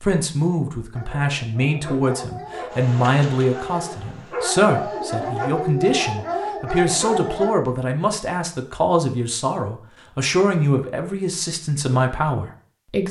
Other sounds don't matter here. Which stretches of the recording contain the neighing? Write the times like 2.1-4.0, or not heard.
not heard.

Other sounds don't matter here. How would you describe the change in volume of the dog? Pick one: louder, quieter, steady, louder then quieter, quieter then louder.
louder.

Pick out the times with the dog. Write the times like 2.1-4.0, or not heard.
0.9-7.5.